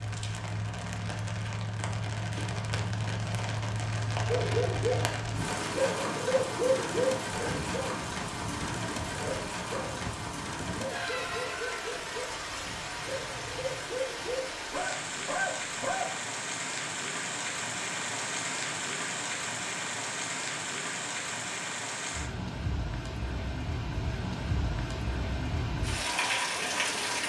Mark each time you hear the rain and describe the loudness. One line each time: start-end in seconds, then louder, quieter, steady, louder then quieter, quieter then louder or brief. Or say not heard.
0.0-27.2 steady.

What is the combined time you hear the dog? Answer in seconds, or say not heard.
12 s.